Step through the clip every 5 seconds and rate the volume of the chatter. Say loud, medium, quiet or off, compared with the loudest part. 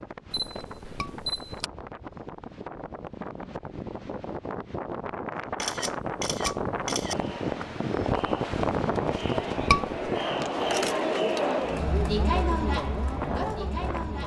off, medium, loud.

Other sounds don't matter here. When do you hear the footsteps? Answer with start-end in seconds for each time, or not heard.
not heard.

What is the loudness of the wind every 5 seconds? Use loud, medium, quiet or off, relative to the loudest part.
medium, loud, medium.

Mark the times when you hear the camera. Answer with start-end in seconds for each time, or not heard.
0.3-1.7, 5.5-7.2, 10.6-11.5.